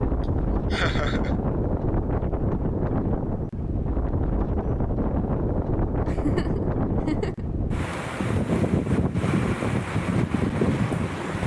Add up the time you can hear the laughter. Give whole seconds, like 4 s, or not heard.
2 s.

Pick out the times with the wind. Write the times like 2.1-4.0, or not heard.
0.0-11.4.